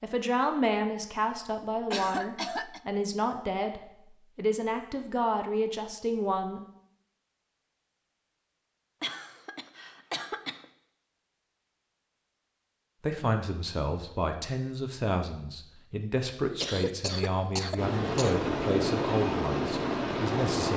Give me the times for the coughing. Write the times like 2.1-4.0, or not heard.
1.9-2.8, 9.0-10.7, 16.6-18.4.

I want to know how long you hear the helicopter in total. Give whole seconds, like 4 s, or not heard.
3 s.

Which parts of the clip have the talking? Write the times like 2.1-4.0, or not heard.
0.0-6.6, 13.0-20.7.